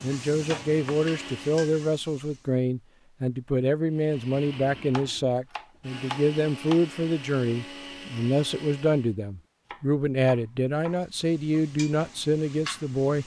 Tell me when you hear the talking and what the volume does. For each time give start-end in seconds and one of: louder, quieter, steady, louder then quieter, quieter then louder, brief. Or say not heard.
0.0-13.2 steady.